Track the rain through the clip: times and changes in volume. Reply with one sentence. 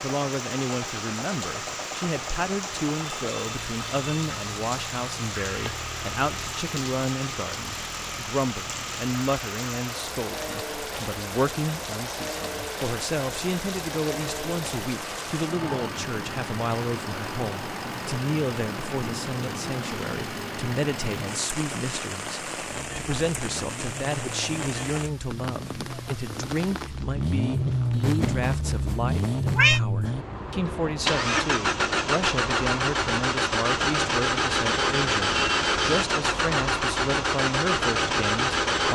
The rain can be heard from 0.0 to 29.0 s, at a steady volume.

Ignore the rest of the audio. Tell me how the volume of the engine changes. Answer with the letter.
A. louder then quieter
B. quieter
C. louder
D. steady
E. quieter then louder
C.